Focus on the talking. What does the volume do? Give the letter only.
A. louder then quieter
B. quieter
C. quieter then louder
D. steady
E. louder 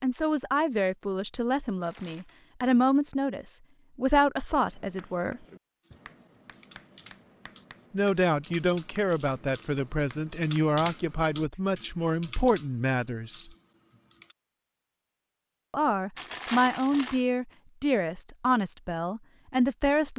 D.